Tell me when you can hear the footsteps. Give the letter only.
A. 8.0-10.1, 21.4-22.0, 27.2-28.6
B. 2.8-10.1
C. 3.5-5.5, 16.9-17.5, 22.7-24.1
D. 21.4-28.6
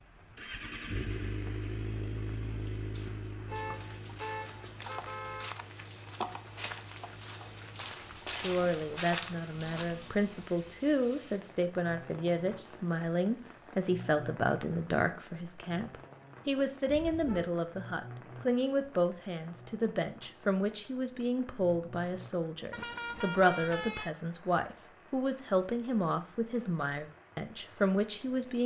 B.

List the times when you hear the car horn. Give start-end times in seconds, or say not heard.
3.5-5.5, 16.9-17.5, 22.7-24.1.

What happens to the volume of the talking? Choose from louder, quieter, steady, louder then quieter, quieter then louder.
steady.